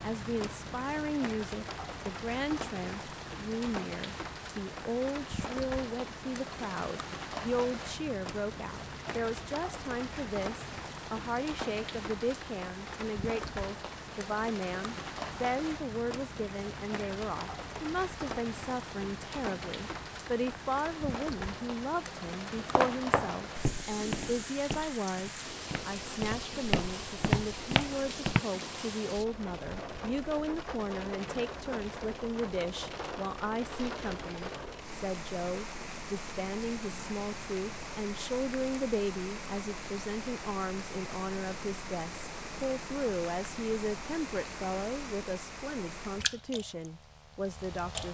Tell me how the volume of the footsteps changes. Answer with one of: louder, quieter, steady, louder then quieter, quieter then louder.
quieter then louder.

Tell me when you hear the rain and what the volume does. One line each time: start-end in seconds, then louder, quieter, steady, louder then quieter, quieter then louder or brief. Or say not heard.
0.0-48.0 steady.